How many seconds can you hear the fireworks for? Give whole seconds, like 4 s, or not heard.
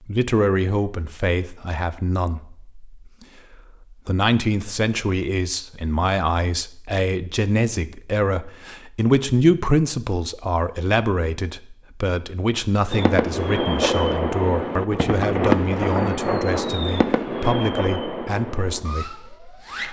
7 s.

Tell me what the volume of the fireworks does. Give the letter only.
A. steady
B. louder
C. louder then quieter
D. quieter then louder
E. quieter
E.